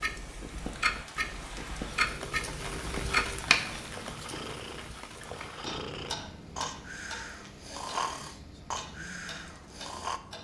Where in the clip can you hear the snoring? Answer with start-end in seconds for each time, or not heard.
1.9-10.2.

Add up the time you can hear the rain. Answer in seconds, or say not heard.
10 s.